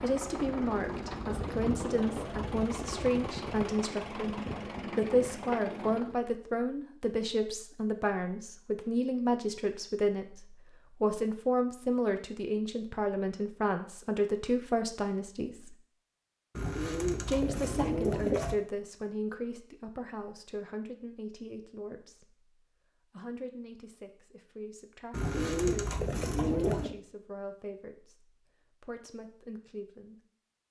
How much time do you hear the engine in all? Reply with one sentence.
The engine can be heard for 6 seconds in total.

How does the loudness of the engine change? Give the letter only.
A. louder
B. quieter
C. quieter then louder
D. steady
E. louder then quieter
D.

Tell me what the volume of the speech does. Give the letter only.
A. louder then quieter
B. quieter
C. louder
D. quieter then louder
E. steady
B.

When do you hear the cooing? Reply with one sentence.
You can hear the cooing from 0.3 to 2.4 s, from 16.6 to 18.6 s and from 25.1 to 26.9 s.